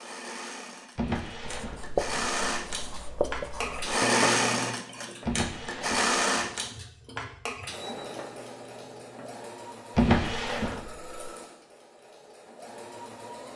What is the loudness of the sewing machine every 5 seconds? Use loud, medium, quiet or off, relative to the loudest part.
loud, loud, quiet.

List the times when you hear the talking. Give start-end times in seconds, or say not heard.
not heard.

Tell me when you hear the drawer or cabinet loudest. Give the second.
10 s.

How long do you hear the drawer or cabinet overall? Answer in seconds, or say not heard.
3 s.